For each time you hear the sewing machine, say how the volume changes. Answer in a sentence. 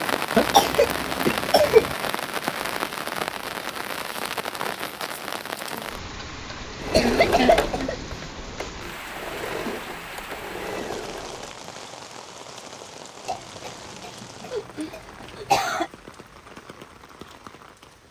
You can hear the sewing machine from 6.8 to 11.7 s, getting quieter then louder.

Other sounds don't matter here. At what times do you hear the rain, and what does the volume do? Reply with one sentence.
The rain can be heard from 0.0 to 18.0 s, getting quieter.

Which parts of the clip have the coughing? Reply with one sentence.
The coughing can be heard from 0.3 to 1.9 s, from 6.8 to 8.0 s and from 13.2 to 15.9 s.